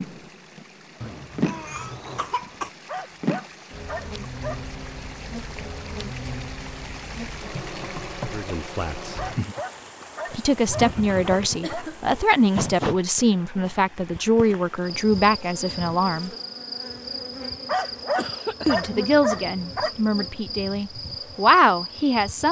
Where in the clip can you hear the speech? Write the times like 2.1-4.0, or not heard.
8.2-9.2, 10.3-16.3, 18.6-22.4.